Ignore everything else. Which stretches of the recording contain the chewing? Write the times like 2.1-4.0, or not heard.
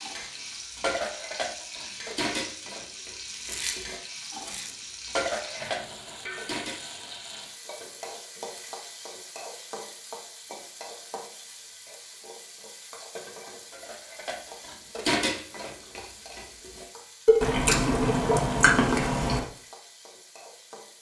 3.2-4.8, 17.4-19.4.